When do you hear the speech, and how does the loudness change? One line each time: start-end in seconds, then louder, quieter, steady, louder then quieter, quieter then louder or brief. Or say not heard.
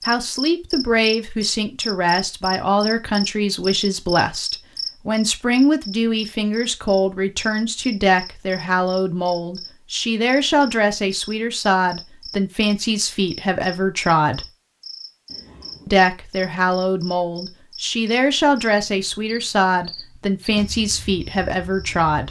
0.1-14.5 steady
15.8-22.2 steady.